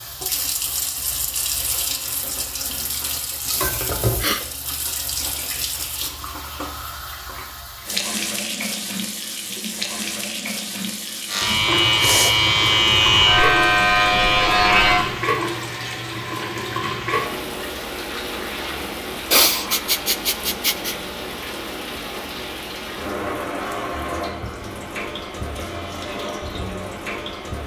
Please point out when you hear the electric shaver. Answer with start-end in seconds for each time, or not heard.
11.2-15.1.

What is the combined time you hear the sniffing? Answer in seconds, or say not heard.
3 s.